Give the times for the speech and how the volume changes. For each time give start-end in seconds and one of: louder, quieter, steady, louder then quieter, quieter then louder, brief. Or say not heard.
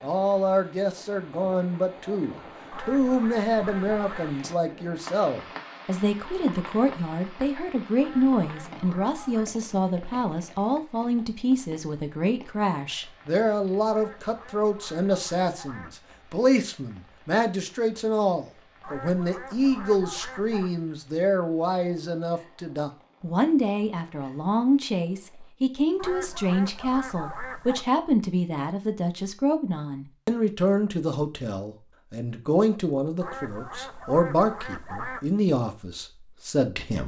0.0-37.0 steady.